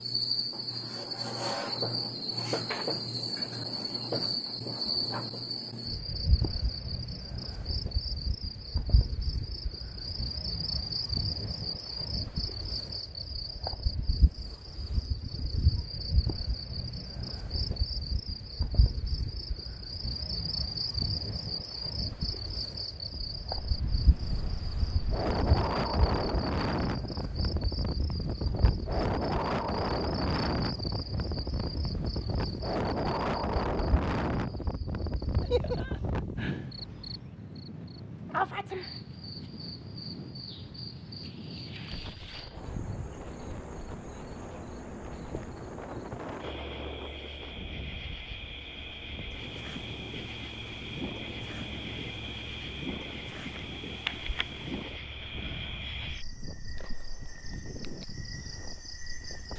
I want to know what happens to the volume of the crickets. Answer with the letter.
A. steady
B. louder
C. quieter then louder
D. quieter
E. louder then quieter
D.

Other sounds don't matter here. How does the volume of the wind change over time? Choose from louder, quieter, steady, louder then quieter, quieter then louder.
quieter.